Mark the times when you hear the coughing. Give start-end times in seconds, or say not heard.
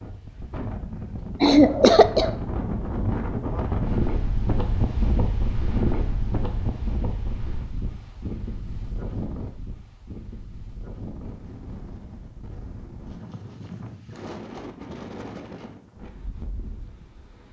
1.4-2.3.